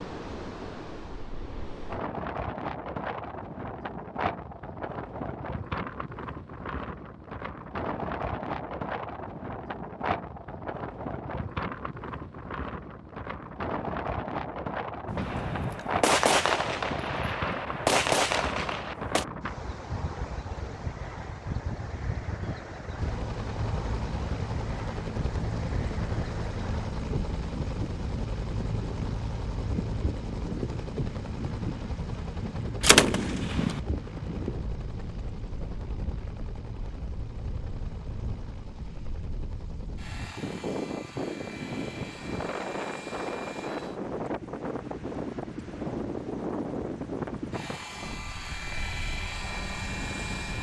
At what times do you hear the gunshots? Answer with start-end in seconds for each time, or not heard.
15.1-19.2, 32.8-33.8.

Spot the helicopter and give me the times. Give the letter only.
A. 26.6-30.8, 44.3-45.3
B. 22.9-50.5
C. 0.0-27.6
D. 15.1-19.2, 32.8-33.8
B.